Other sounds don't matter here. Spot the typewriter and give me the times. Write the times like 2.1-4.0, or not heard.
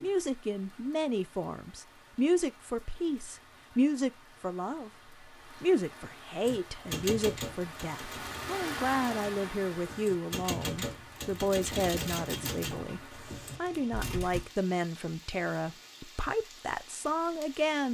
6.5-14.4.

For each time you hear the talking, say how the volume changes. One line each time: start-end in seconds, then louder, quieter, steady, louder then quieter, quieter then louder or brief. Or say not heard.
0.0-17.8 steady.